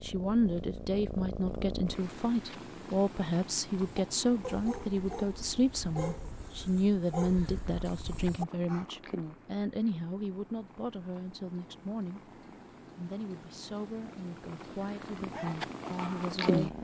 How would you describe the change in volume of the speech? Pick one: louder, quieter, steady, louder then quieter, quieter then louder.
quieter.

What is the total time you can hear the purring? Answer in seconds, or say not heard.
17 s.